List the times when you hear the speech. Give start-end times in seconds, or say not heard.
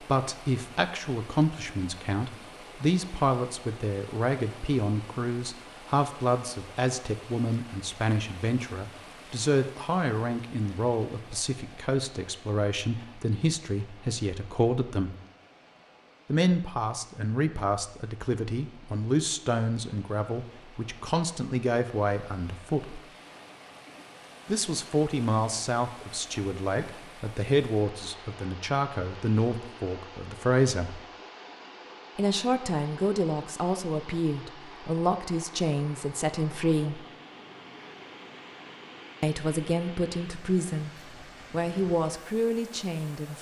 0.1-15.1, 16.2-23.0, 24.4-31.0, 32.1-37.0, 39.2-40.9, 41.5-43.3.